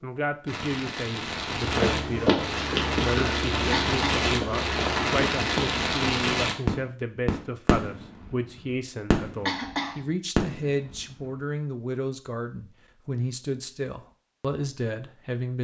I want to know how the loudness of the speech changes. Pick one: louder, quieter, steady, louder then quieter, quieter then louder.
steady.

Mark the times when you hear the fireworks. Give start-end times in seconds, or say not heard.
0.5-11.4.